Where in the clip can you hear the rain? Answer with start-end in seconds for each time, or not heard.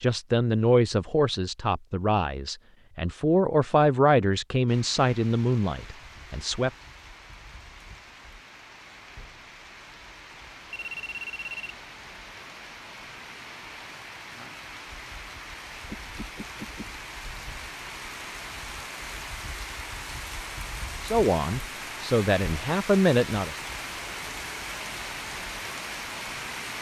4.7-26.7.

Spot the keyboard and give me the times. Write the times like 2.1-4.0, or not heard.
not heard.